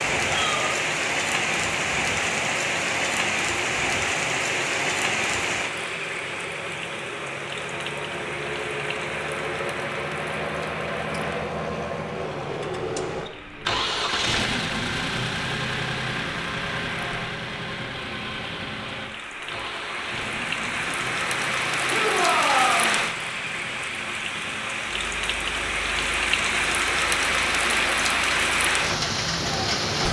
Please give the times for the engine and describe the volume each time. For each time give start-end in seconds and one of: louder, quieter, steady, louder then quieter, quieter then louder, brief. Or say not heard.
0.0-29.8 louder then quieter.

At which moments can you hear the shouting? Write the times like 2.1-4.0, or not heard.
0.2-0.7, 21.9-22.9.